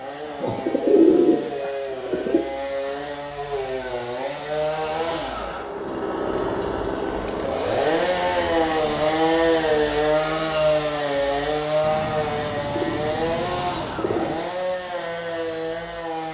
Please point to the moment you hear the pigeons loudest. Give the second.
1 s.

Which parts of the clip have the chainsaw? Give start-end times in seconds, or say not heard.
0.0-16.2.